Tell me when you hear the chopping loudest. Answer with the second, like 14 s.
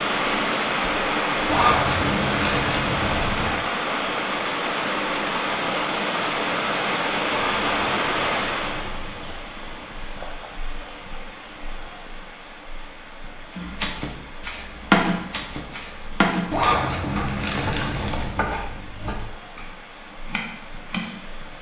15 s.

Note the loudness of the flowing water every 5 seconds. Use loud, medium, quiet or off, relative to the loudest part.
loud, loud, quiet, quiet, quiet.